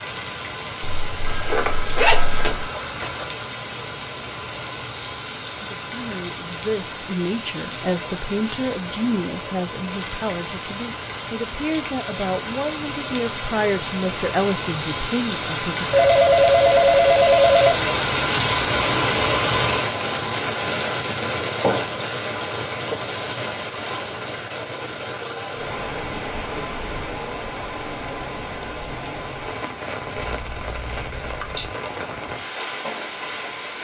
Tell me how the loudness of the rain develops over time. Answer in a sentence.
The loudness of the rain goes up, then down.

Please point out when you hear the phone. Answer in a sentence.
The phone can be heard from 1.2 to 3.2 s, from 15.9 to 17.8 s and from 30.2 to 31.7 s.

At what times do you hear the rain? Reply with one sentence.
You can hear the rain from 0.0 to 33.7 s.